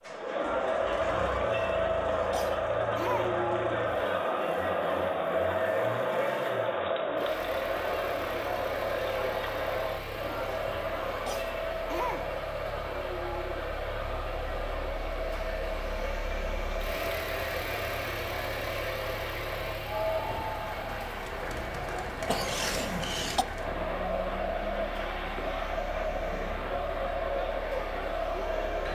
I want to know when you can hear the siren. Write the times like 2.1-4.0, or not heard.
not heard.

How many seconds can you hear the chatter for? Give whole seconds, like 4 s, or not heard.
29 s.